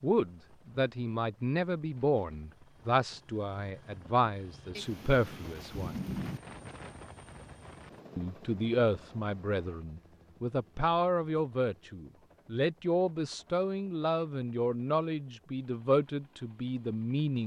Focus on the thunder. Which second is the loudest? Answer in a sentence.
The loudest moment of the thunder is at 6 seconds.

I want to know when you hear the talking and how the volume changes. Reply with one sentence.
You can hear the talking from 0.0 to 6.0 s, at a steady volume; and from 8.2 to 17.4 s, at a steady volume.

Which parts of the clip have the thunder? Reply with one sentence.
You can hear the thunder from 4.8 to 6.4 s.